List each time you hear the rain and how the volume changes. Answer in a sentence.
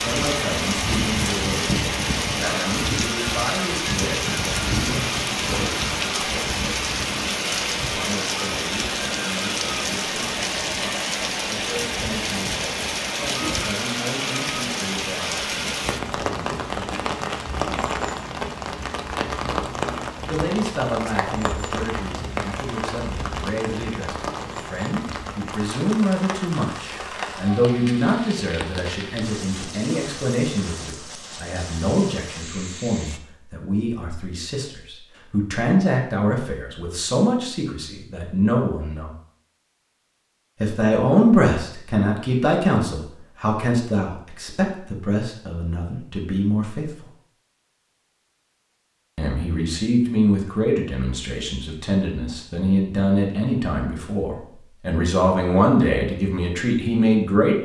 You can hear the rain from 0.0 to 33.2 s, getting quieter.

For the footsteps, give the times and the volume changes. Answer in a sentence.
You can't hear the footsteps here.